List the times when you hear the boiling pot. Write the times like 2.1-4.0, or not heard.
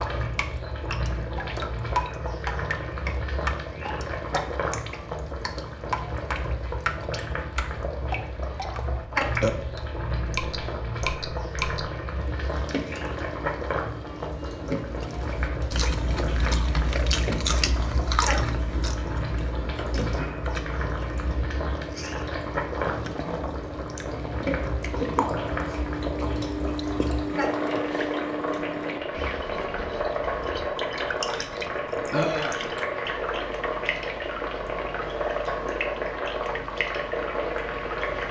0.0-38.2.